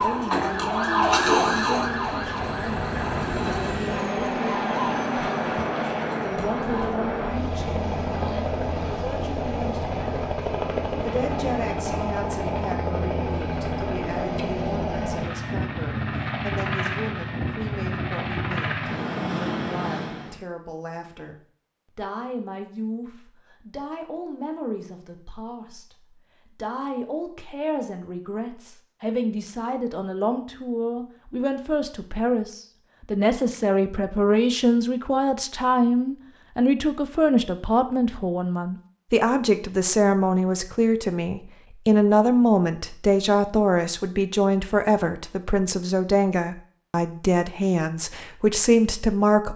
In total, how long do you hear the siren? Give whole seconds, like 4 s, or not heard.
7 s.